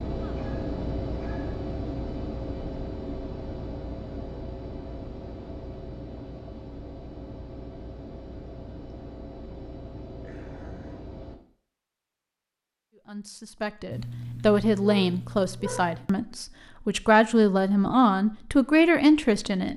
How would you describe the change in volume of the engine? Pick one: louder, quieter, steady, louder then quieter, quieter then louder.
quieter.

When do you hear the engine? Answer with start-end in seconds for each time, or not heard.
0.0-11.4.